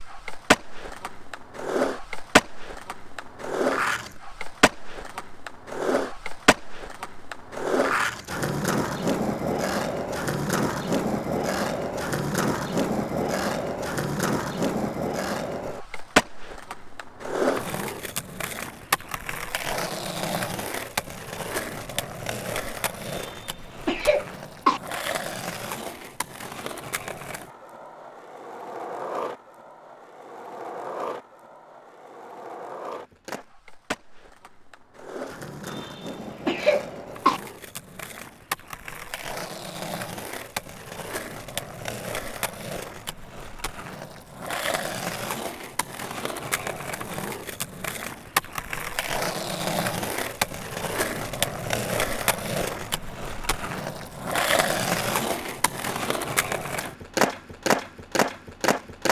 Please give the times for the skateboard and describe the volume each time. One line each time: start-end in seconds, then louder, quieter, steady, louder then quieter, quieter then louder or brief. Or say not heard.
0.0-59.0 quieter then louder.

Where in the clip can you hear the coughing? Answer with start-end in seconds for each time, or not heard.
23.1-24.8, 35.6-37.4.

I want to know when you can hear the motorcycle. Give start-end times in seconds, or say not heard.
not heard.